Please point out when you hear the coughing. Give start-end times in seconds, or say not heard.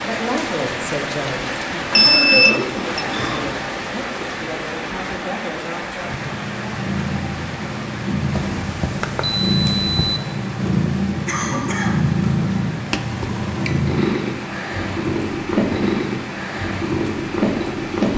1.9-3.5, 11.2-12.0.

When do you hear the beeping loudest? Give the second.
2 s.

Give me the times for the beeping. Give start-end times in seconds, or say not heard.
1.7-3.0, 8.3-10.2, 12.9-13.8.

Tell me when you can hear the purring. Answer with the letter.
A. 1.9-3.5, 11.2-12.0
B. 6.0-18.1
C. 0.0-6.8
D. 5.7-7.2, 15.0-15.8
B.